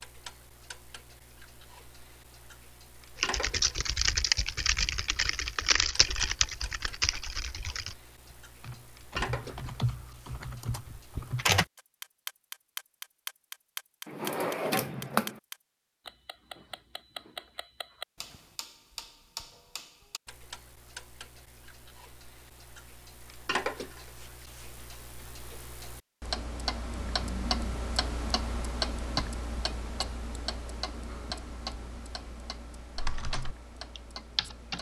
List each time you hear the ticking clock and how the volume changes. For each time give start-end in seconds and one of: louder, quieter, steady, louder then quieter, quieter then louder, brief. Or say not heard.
0.0-34.7 louder.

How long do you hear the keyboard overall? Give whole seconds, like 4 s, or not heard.
10 s.